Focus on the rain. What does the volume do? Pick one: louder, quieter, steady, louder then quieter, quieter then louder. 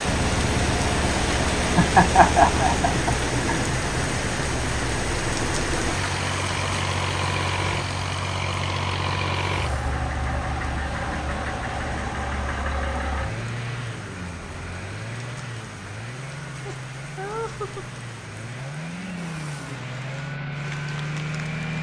quieter.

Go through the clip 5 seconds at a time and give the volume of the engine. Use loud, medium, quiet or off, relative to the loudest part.
loud, loud, loud, medium, loud.